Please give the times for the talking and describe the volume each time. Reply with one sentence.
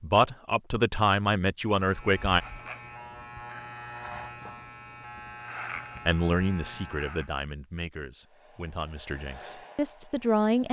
The talking can be heard briefly from 0.0 to 2.4 s; and from 6.0 to 10.6 s, getting quieter then louder.